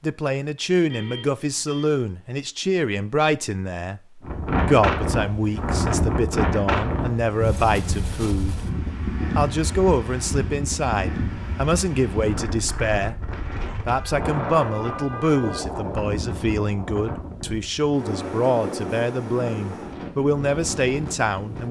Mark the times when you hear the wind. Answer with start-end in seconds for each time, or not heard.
4.2-21.6.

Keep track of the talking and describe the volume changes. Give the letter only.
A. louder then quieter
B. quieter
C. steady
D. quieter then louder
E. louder
C.